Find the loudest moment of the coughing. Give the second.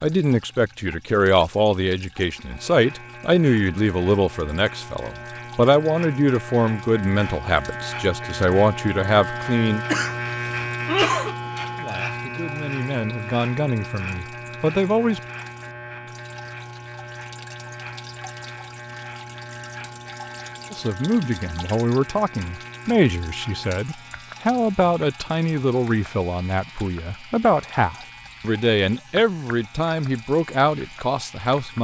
11 s.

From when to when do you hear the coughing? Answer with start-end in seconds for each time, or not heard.
9.8-11.3.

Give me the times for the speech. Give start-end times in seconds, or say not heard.
0.0-9.8, 11.8-15.2, 20.7-31.7.